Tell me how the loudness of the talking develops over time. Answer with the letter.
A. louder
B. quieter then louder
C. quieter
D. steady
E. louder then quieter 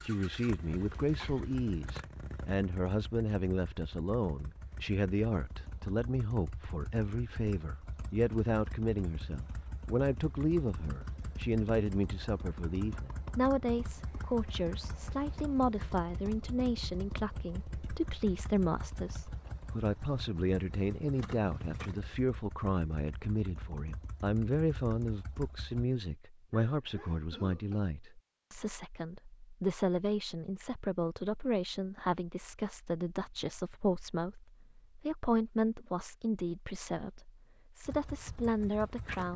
D.